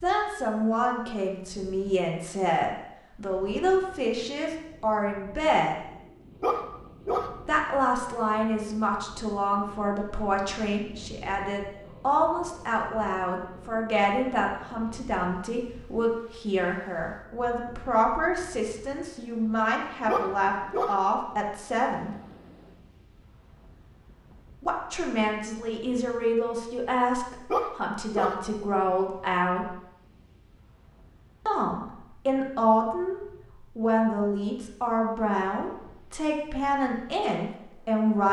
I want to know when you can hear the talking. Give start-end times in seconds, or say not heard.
0.0-5.8, 7.5-22.1, 24.6-29.8, 31.4-38.2.